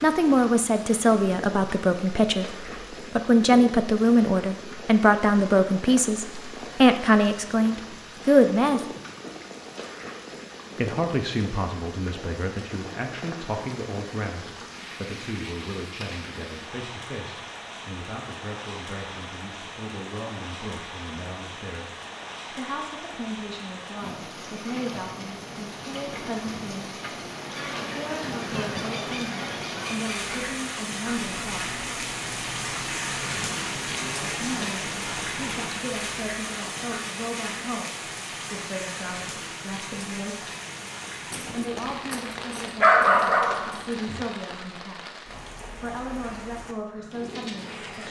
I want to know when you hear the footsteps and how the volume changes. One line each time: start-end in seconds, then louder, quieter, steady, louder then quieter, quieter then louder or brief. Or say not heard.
not heard.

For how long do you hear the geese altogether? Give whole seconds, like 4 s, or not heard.
8 s.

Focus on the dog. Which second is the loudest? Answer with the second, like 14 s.
43 s.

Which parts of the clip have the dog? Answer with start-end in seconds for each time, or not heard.
41.3-44.2.